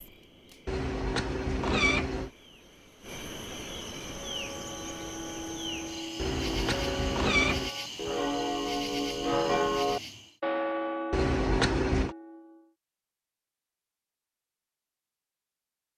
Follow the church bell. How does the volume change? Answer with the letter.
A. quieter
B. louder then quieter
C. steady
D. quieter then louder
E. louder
B.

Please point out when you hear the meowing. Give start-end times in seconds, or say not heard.
0.7-2.3, 6.2-7.7, 11.1-12.2.